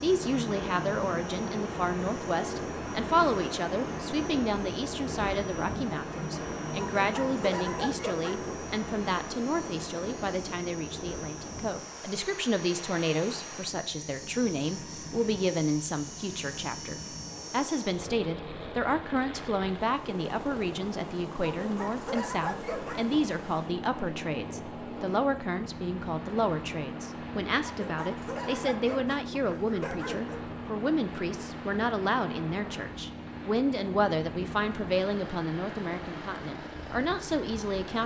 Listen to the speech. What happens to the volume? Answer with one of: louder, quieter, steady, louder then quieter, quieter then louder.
steady.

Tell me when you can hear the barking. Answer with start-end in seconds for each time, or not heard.
7.0-8.5, 21.4-23.1, 27.8-30.4.